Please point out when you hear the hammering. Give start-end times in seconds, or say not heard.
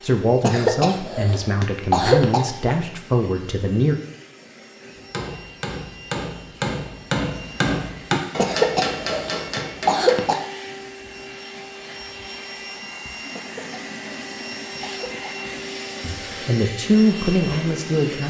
5.0-10.3.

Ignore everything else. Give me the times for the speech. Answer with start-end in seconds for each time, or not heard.
0.0-4.0, 16.0-18.2.